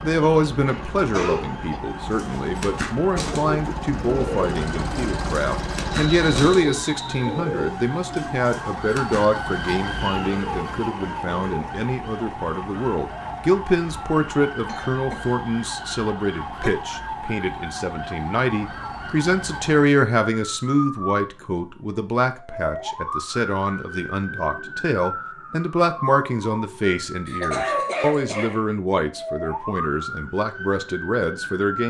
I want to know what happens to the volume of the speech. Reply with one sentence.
The volume of the speech stays about the same.